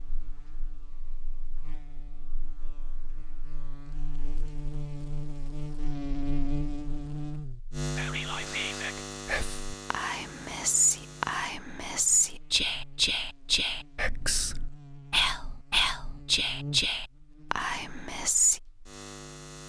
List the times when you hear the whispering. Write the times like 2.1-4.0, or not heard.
8.0-18.6.